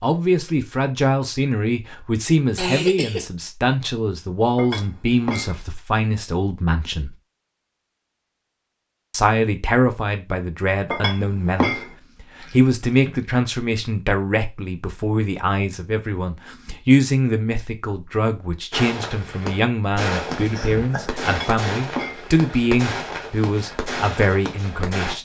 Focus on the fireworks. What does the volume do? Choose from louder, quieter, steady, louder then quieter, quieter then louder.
steady.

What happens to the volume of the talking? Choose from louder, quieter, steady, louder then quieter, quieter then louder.
steady.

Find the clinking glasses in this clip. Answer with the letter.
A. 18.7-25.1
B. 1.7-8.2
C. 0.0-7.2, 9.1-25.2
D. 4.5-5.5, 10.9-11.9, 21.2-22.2
D.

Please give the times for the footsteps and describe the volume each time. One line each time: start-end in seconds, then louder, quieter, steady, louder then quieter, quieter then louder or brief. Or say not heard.
not heard.